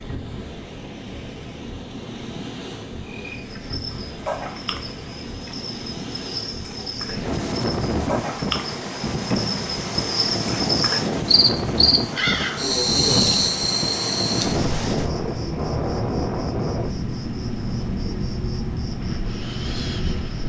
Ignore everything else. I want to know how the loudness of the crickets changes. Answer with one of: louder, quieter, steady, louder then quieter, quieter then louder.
louder then quieter.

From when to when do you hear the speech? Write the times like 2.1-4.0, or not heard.
not heard.